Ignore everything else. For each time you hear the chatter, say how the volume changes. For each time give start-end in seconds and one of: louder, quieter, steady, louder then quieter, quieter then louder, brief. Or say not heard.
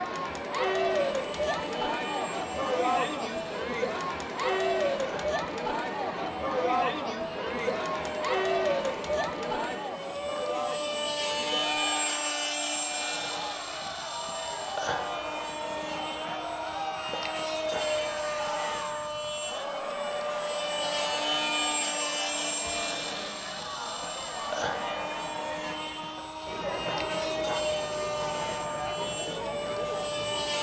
0.0-30.5 quieter.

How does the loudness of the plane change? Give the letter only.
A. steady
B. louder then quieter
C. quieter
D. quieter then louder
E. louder
E.